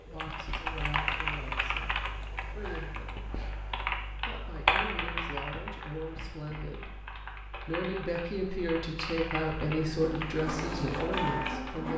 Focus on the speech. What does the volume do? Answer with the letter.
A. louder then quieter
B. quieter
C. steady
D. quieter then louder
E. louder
E.